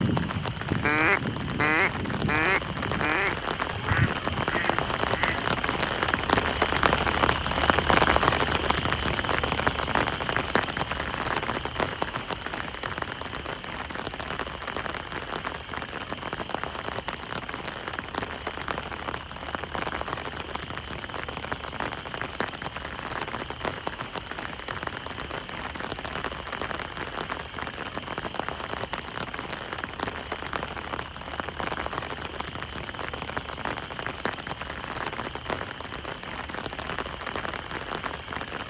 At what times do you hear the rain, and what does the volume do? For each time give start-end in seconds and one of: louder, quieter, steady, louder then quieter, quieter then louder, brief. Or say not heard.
0.0-38.6 quieter.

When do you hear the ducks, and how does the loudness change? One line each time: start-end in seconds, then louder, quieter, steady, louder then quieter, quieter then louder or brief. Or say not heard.
0.0-5.5 quieter.